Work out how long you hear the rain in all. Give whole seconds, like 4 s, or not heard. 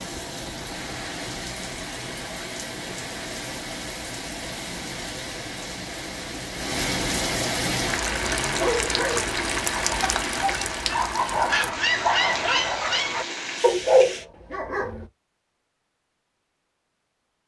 14 s.